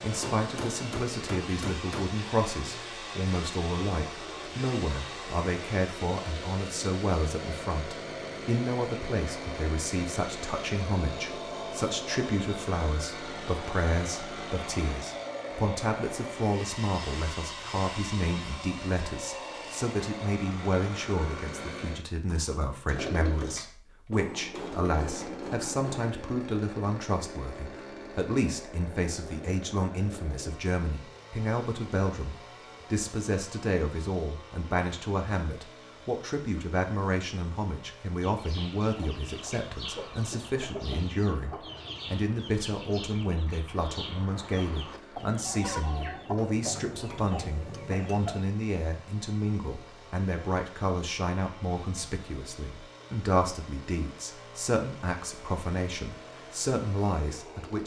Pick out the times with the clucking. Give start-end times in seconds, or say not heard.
38.2-48.4.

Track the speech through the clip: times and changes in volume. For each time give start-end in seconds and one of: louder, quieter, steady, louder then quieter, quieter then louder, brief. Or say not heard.
0.0-57.8 steady.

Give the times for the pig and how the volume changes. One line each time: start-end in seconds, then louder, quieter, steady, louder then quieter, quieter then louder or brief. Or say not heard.
not heard.